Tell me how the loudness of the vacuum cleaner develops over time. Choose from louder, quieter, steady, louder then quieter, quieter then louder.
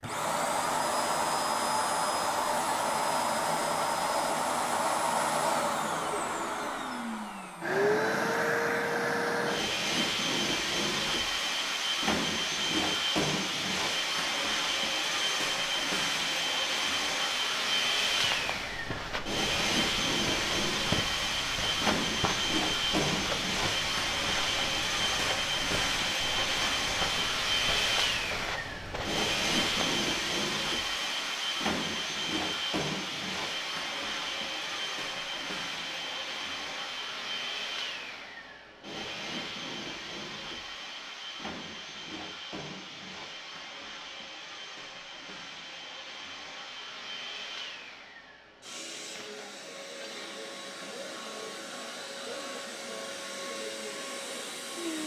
quieter.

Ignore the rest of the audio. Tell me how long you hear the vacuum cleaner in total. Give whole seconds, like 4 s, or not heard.
55 s.